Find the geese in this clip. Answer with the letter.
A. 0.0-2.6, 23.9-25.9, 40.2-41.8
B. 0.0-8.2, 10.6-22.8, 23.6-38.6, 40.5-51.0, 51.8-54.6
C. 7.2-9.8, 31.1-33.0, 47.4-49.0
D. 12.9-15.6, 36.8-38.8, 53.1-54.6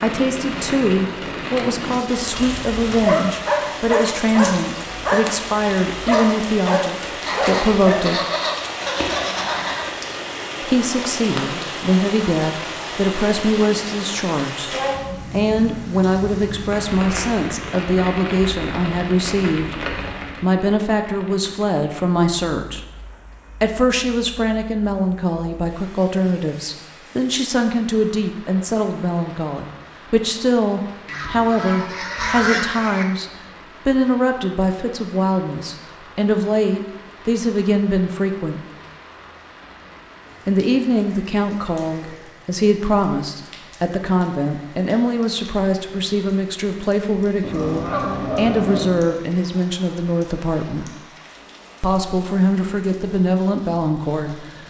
C.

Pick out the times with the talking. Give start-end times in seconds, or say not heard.
0.0-8.2, 10.6-22.8, 23.6-38.6, 40.5-51.0, 51.8-54.6.